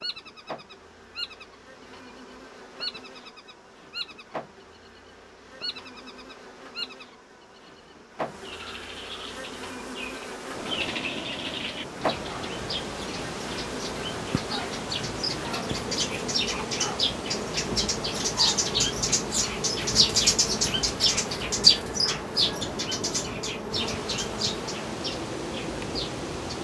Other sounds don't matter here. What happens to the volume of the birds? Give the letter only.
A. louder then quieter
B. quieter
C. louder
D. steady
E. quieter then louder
A.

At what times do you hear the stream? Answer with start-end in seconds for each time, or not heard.
10.4-26.5.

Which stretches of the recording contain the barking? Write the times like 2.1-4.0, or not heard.
not heard.